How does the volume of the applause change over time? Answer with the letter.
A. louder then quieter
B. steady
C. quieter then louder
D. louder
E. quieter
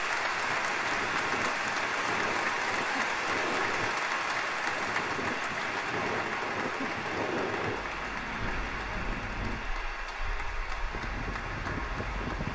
E.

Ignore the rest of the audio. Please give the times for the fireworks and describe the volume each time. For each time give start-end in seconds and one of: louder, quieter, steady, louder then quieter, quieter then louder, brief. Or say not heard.
not heard.